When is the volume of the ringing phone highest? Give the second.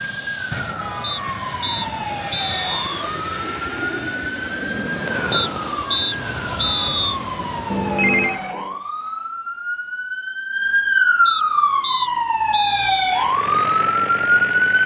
8 s.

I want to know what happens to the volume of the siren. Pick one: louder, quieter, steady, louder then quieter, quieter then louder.
louder.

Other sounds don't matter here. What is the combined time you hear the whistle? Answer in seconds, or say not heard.
6 s.